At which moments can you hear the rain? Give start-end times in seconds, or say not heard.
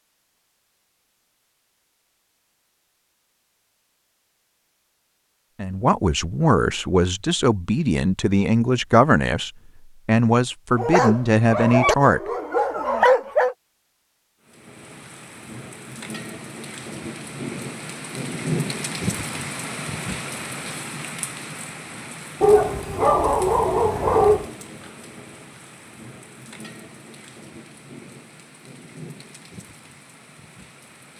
14.4-31.1.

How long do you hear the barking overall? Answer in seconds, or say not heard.
5 s.